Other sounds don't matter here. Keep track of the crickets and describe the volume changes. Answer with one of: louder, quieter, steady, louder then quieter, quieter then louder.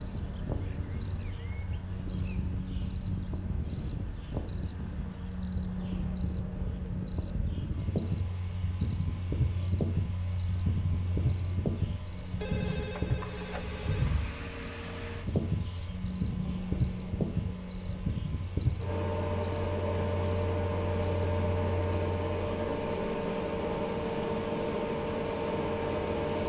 steady.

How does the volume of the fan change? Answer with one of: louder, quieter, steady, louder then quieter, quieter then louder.
louder.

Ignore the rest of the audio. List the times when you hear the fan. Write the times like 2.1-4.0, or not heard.
0.0-26.4.